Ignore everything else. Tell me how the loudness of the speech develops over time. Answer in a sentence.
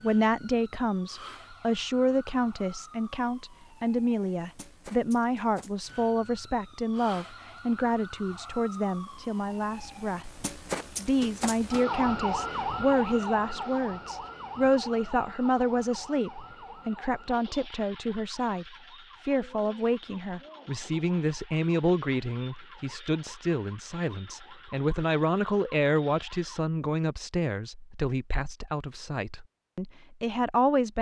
The volume of the speech stays about the same.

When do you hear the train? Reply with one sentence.
You can't hear the train here.